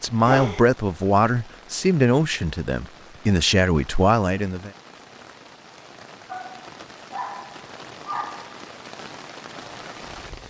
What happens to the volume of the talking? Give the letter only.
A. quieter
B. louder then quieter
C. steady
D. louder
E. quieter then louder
C.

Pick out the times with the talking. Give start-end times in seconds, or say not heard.
0.0-4.7.